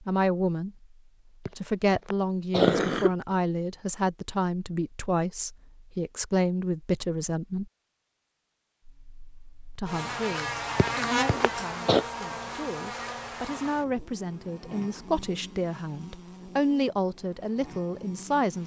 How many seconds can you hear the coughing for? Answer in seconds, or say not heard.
3 s.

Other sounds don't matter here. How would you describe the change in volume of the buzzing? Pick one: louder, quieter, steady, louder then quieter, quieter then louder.
quieter.